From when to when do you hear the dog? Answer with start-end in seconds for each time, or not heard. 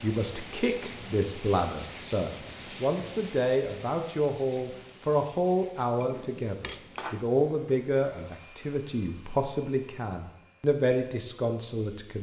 not heard.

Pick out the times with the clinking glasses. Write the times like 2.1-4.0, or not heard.
6.0-7.2.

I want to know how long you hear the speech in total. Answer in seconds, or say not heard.
12 s.